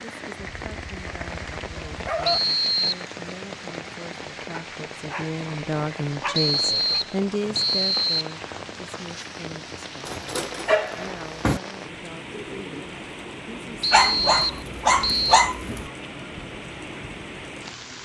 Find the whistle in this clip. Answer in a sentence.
You can hear the whistle from 2.2 to 3.0 s, from 6.3 to 8.3 s and from 13.8 to 15.4 s.